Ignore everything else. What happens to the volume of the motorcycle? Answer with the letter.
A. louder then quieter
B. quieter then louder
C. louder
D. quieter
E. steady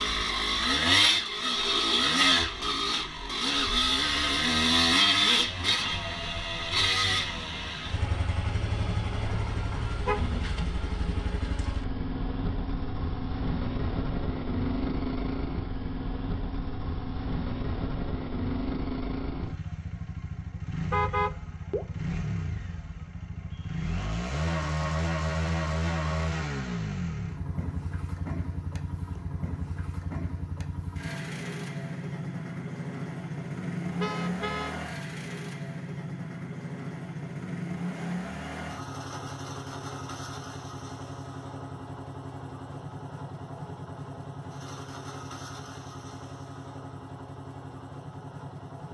D.